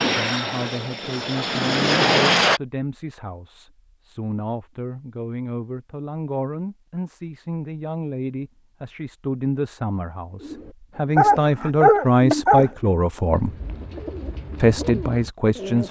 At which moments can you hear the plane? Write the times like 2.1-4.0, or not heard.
0.0-2.6.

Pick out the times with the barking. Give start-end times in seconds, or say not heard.
11.2-12.7.